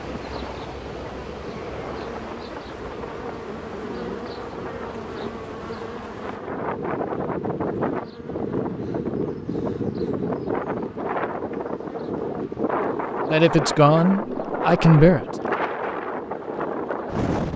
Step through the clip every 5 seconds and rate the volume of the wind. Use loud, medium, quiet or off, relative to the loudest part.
medium, loud, loud, loud.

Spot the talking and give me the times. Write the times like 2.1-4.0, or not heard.
13.3-15.2.